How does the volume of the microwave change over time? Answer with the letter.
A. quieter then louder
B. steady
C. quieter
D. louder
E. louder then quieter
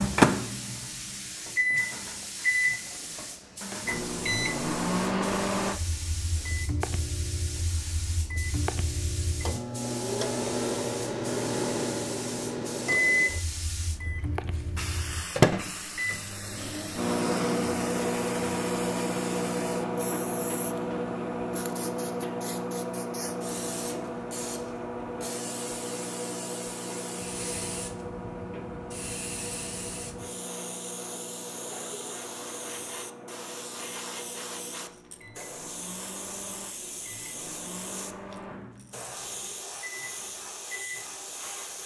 C.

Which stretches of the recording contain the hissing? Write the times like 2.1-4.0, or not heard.
0.0-41.8.